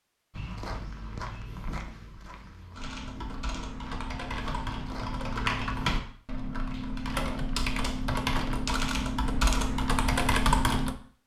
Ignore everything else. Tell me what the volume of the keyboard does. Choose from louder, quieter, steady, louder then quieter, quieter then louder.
louder.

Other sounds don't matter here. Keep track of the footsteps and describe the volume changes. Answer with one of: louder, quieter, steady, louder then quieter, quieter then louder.
quieter then louder.